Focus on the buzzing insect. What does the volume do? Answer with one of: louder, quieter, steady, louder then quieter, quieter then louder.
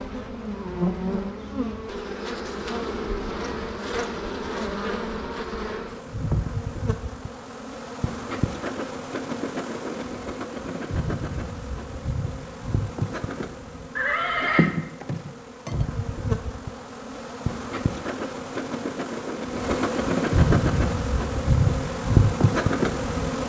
louder.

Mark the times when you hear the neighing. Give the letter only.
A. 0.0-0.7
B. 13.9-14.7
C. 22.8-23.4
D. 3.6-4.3
B.